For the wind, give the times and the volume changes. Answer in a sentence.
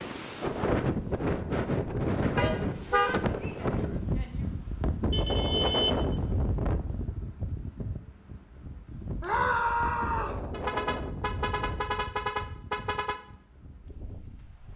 You can hear the wind from 0.0 to 14.7 s, getting quieter.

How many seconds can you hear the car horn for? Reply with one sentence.
You can hear the car horn for 5 seconds altogether.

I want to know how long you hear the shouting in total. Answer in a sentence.
You can hear the shouting for 3 seconds altogether.